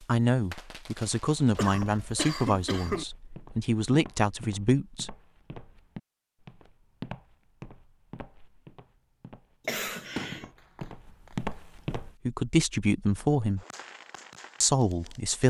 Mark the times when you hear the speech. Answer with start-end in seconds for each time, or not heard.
0.1-5.1, 12.2-13.6, 14.6-15.4.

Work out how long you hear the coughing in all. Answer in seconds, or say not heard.
2 s.